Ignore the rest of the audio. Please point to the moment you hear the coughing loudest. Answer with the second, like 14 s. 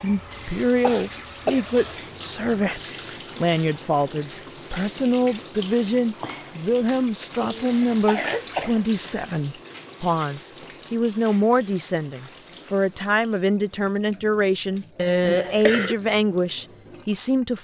15 s.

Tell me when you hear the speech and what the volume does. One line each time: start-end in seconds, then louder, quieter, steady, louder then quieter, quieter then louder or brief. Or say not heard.
0.0-17.5 steady.